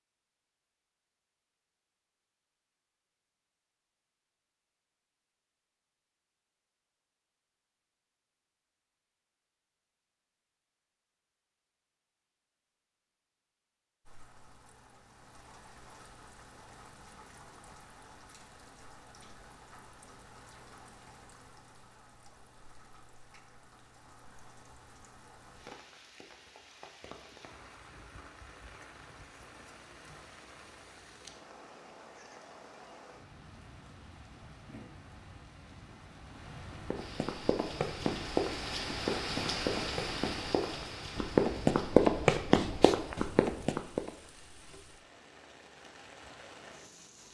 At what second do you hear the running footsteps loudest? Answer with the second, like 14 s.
42 s.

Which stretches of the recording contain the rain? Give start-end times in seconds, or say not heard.
14.1-47.2.